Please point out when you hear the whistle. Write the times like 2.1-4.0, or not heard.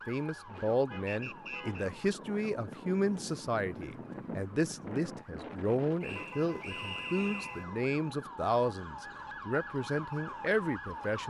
1.1-1.9, 6.0-7.7.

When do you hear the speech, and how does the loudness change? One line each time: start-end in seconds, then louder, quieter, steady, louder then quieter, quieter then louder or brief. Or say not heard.
0.1-11.2 steady.